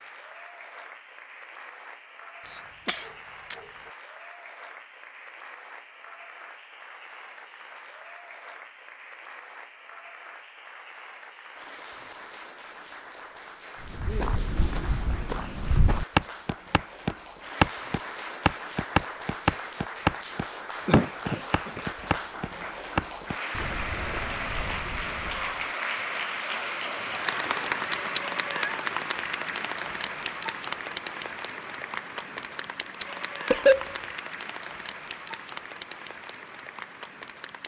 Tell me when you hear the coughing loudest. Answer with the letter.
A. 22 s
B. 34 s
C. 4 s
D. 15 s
B.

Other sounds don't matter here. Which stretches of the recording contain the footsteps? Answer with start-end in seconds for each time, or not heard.
13.9-25.6.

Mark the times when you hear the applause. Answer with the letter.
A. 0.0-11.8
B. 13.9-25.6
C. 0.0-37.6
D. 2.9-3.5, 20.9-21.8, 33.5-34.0
C.